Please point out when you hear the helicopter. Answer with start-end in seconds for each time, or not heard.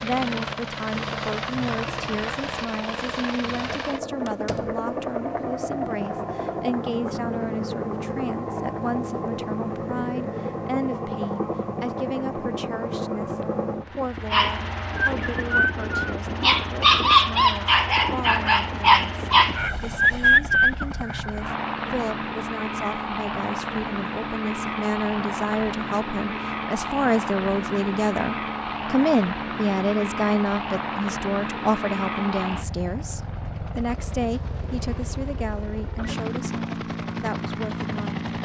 0.0-38.4.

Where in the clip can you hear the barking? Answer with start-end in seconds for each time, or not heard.
14.3-20.9.